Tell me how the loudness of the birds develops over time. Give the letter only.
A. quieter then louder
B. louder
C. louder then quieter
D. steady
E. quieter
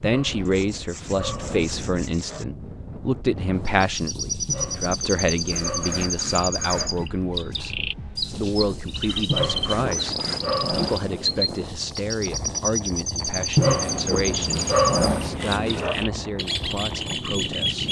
D.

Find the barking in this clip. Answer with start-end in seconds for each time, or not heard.
0.0-2.5, 4.5-7.0, 9.2-11.6, 13.6-16.0.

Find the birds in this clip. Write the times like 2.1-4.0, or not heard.
3.6-17.8.